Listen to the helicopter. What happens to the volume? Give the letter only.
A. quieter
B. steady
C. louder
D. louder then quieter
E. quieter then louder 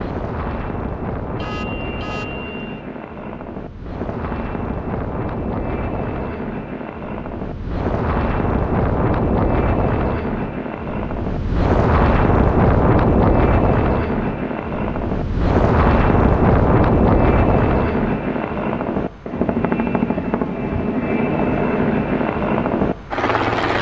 C.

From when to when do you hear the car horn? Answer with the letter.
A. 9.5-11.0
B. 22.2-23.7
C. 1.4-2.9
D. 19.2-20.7
C.